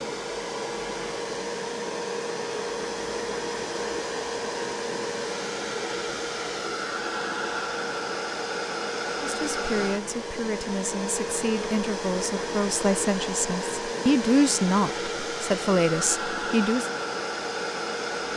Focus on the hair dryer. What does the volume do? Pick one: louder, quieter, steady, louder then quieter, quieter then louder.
steady.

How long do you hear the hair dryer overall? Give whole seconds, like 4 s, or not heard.
18 s.